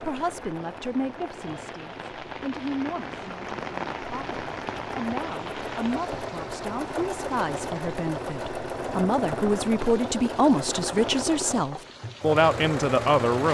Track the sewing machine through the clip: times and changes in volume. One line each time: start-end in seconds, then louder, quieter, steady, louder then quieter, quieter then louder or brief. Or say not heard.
0.0-13.4 louder.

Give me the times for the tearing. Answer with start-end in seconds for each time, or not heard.
not heard.